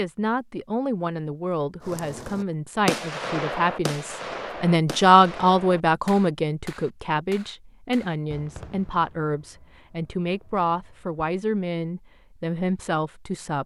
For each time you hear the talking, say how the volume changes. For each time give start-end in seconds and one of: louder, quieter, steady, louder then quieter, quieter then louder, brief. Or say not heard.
0.0-13.6 louder then quieter.